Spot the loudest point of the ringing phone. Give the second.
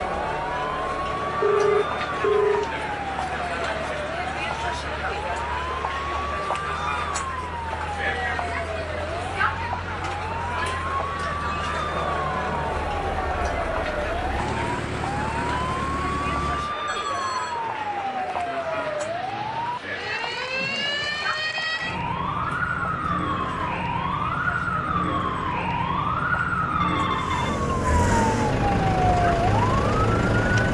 2 s.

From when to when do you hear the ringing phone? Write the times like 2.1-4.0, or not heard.
1.4-2.6, 16.9-17.6, 26.8-27.7.